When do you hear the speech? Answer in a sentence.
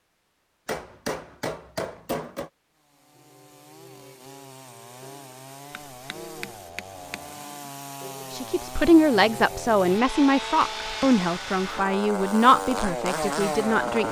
You can hear the speech from 8.3 to 14.0 s.